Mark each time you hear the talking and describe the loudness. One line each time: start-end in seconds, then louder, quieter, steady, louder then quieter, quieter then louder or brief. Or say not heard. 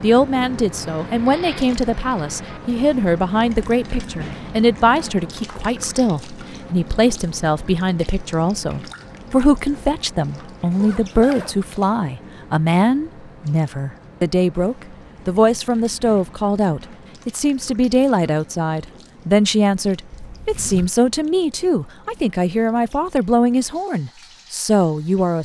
0.0-25.4 steady.